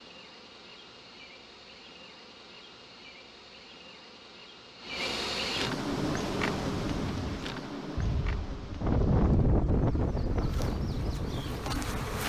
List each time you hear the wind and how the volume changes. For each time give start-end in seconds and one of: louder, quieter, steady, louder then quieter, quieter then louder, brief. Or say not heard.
6.1-12.2 louder then quieter.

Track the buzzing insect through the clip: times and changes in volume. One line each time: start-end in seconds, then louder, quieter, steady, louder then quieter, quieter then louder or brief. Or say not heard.
0.0-12.2 louder then quieter.